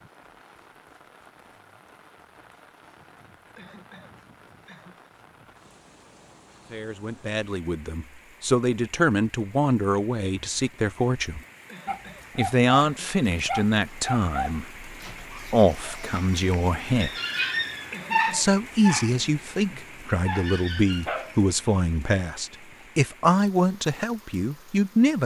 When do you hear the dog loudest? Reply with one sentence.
The volume of the dog peaks at 18 seconds.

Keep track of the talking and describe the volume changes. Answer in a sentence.
The loudness of the talking stays about the same.